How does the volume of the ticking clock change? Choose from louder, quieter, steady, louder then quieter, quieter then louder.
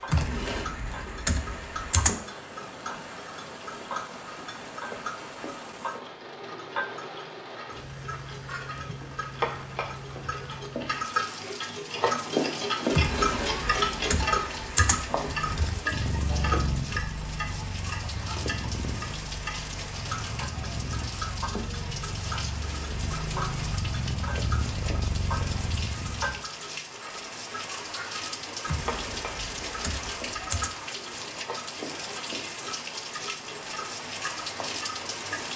louder then quieter.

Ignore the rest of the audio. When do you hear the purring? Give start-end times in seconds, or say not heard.
15.1-26.4.